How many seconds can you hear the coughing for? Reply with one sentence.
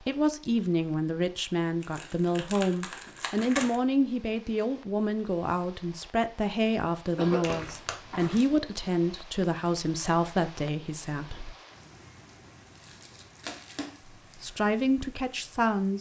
You can hear the coughing for 2 seconds altogether.